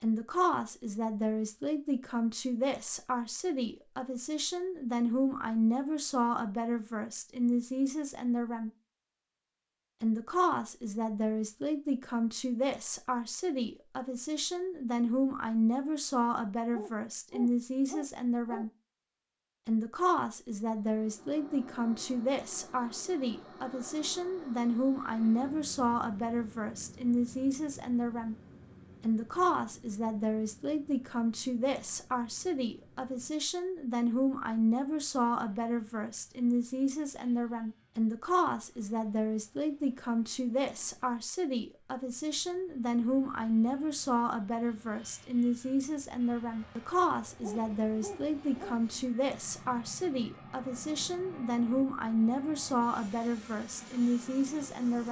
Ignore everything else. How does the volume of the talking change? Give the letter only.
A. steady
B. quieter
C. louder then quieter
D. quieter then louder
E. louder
A.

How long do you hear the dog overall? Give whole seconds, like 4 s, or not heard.
3 s.